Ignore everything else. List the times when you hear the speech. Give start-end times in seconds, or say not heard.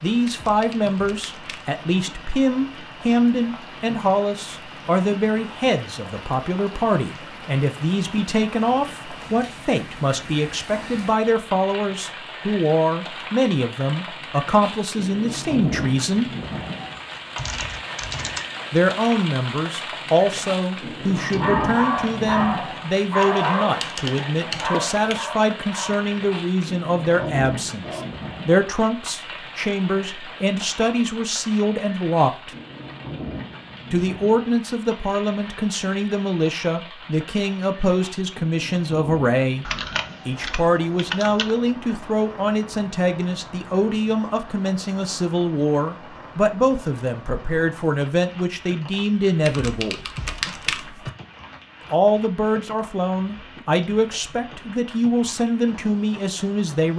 0.0-16.3, 18.7-32.5, 33.9-39.6, 40.2-50.0, 51.9-56.9.